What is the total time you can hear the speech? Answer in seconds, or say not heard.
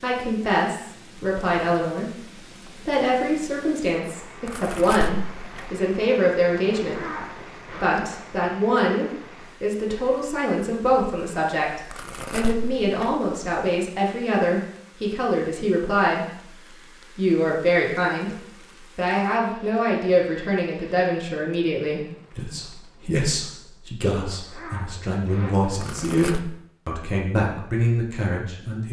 28 s.